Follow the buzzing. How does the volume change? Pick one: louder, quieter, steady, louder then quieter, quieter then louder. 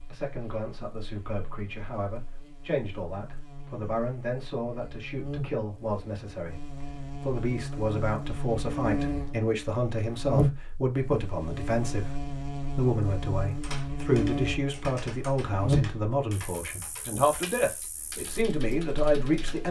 louder.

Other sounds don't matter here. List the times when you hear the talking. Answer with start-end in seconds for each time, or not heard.
0.0-19.6.